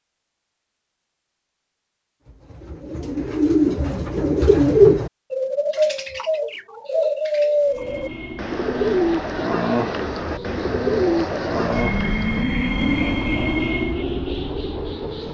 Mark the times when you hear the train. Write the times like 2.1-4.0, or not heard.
7.7-15.2.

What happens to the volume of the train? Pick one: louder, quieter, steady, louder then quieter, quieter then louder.
louder.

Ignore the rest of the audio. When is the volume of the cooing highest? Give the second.
5 s.